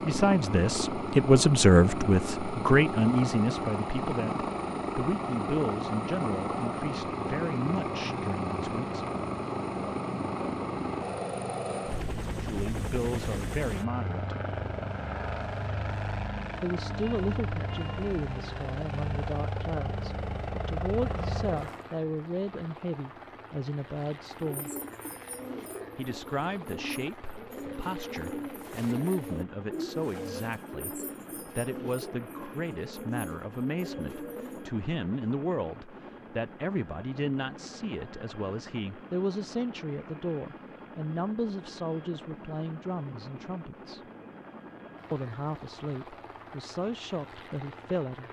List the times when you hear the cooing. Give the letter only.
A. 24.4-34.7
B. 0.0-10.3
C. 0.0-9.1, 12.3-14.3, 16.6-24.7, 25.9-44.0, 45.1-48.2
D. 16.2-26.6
A.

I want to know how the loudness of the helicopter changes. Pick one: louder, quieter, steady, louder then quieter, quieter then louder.
quieter.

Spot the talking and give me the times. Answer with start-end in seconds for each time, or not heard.
0.0-9.1, 12.3-14.3, 16.6-24.7, 25.9-44.0, 45.1-48.2.